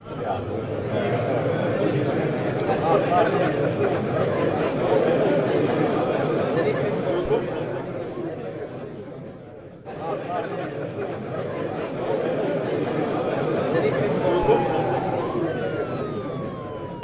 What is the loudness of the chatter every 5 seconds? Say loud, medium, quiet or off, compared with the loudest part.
loud, loud, loud, medium.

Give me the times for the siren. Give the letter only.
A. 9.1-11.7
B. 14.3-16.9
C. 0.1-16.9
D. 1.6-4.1
B.